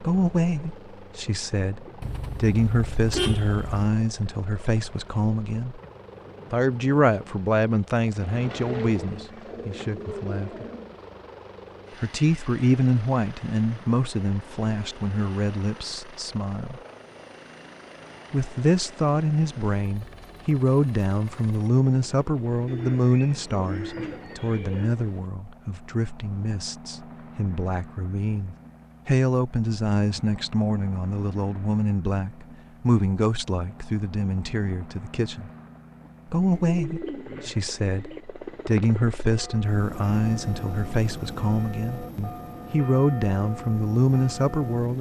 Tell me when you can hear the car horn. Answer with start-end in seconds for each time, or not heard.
2.0-3.9.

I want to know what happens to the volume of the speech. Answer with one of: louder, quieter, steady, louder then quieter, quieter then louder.
steady.